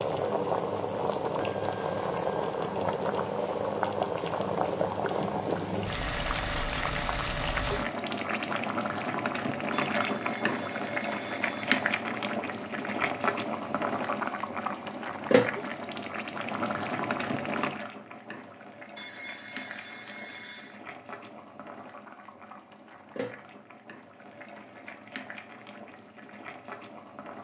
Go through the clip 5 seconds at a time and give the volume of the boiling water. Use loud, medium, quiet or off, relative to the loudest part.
loud, loud, loud, loud, quiet, quiet.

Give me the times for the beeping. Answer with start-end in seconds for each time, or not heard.
9.7-12.1, 18.9-20.8.